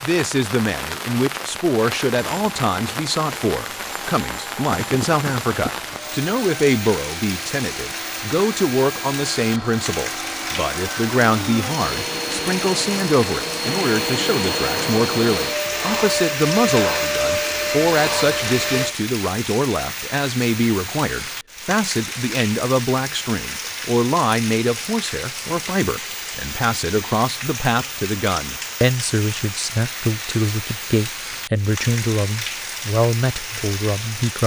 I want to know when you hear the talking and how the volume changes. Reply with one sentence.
You can hear the talking from 0.0 to 34.4 s, at a steady volume.